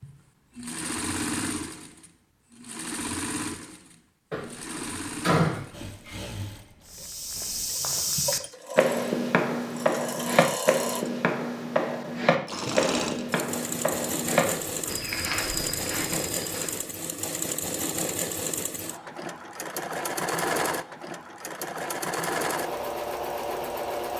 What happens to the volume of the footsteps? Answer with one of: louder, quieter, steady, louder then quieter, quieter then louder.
quieter.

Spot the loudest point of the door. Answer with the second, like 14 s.
5 s.